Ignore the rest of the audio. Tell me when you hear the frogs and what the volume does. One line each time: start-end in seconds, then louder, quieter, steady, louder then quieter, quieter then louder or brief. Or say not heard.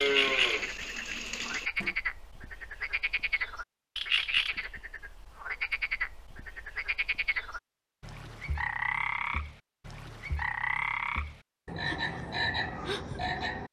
0.0-13.6 steady.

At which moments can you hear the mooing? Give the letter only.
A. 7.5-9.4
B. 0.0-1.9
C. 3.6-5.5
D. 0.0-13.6
B.